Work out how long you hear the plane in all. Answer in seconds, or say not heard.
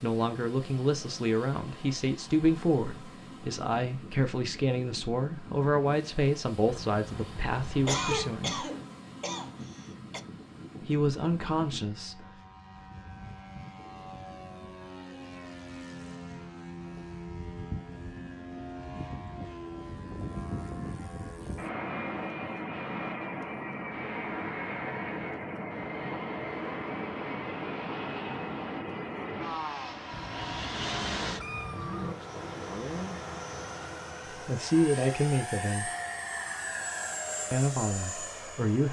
39 s.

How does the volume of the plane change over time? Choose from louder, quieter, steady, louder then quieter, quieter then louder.
louder.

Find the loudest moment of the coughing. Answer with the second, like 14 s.
8 s.